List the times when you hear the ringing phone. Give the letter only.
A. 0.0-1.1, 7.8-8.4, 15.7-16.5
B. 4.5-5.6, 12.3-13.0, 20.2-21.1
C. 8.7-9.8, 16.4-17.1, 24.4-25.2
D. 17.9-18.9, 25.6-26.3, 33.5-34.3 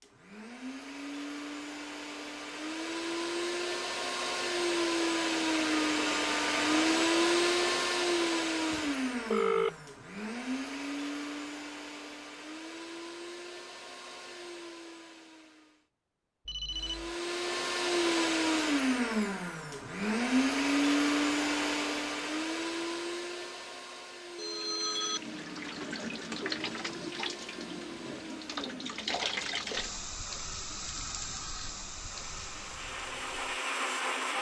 C.